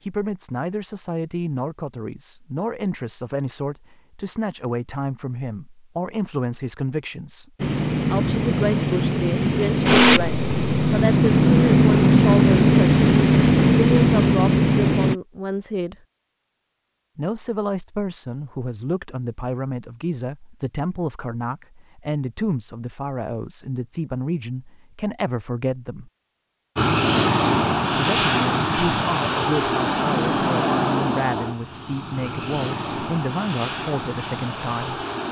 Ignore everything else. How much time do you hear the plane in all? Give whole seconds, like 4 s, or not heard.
16 s.